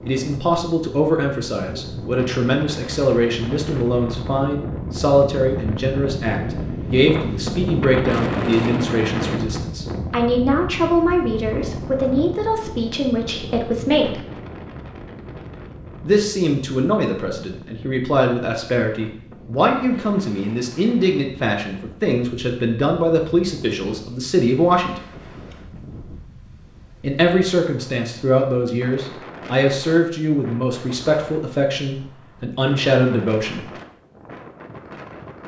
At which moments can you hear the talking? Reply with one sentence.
You can hear the talking from 0.1 to 14.2 s, from 16.0 to 25.0 s and from 27.0 to 33.6 s.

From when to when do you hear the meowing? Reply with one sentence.
You can't hear the meowing here.